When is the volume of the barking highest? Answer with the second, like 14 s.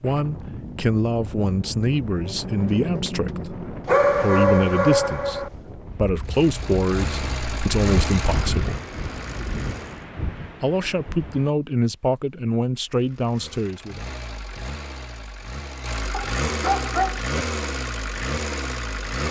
4 s.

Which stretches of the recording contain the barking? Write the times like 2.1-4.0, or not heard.
3.9-5.5, 16.1-17.2.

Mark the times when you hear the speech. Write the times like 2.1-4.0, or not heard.
0.0-8.8, 10.6-14.0.